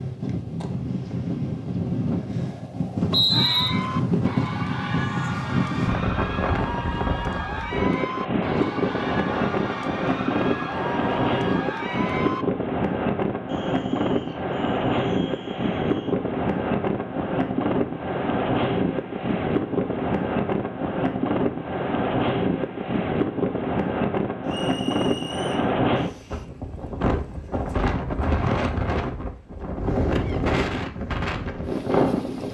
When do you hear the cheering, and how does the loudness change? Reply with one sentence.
You can hear the cheering from 3.3 to 12.4 s, at a steady volume.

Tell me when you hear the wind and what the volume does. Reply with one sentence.
You can hear the wind from 0.0 to 32.4 s, at a steady volume.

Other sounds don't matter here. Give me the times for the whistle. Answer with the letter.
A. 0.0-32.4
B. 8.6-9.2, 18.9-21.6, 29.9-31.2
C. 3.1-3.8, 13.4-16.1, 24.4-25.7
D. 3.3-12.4
C.